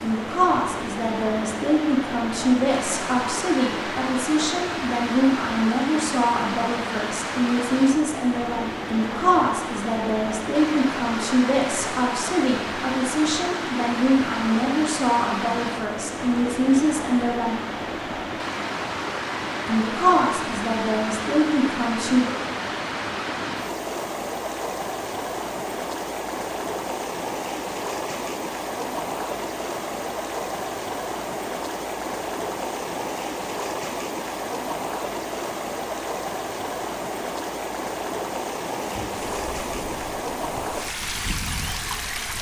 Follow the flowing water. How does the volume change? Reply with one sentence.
The loudness of the flowing water stays about the same.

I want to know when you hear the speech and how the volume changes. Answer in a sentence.
The speech can be heard from 0.0 to 17.6 s, at a steady volume; and briefly from 19.6 to 22.3 s.